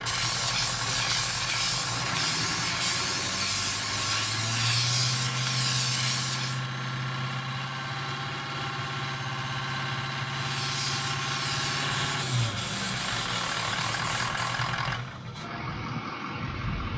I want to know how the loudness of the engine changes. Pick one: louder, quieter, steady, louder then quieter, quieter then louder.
steady.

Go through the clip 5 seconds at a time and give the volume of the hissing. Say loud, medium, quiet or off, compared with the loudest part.
loud, loud, medium, off.